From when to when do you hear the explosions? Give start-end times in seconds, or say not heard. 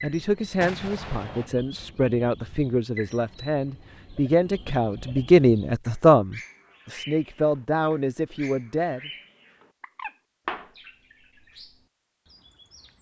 0.6-1.5.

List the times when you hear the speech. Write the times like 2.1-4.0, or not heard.
0.0-9.1.